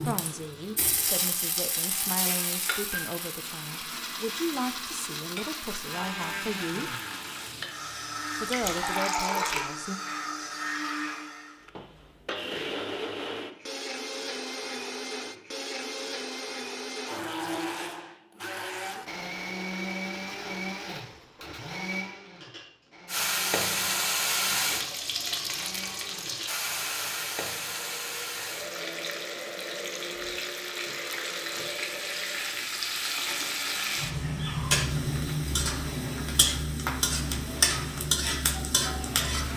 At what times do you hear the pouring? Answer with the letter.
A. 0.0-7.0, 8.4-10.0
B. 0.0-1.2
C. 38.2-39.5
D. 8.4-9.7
D.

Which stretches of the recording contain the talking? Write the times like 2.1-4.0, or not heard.
0.0-7.0, 8.4-10.0.